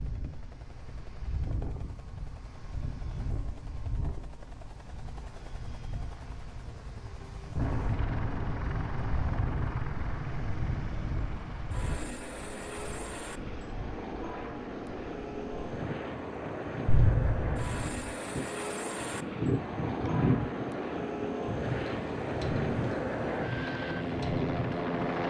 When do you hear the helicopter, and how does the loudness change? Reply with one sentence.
The helicopter can be heard from 0.0 to 25.2 s, getting louder.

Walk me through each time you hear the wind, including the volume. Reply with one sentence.
The wind can be heard from 0.0 to 25.1 s, getting louder.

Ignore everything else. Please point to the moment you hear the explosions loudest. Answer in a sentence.
The loudest moment of the explosions is at 17 seconds.